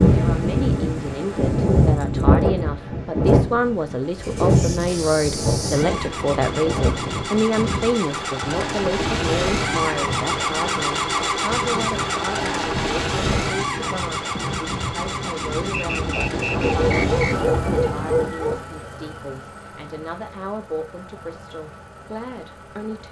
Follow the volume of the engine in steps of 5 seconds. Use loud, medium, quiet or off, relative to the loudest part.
quiet, loud, loud, medium, quiet.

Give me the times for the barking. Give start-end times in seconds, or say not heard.
16.6-18.6.